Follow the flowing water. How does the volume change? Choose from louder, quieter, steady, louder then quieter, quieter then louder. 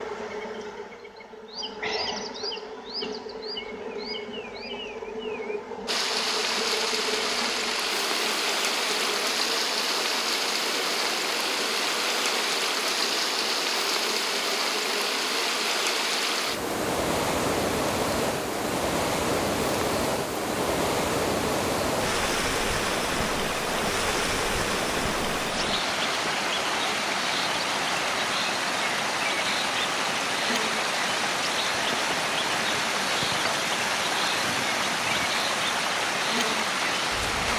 steady.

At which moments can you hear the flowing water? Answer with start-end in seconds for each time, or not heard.
5.8-37.5.